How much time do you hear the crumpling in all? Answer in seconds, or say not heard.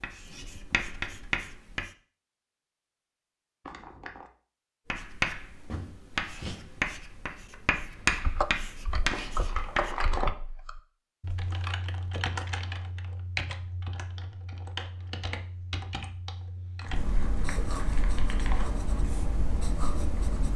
4 s.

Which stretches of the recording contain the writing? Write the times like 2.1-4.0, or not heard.
0.0-1.9, 4.9-9.9, 16.9-20.5.